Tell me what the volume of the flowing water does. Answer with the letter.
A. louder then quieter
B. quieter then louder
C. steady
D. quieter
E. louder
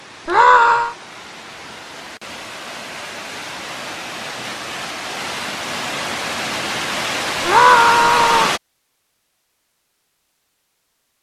E.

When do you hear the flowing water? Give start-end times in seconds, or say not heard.
0.0-8.6.